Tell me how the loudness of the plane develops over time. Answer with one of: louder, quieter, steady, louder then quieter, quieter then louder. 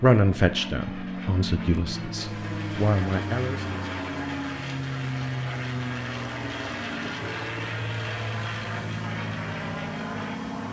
steady.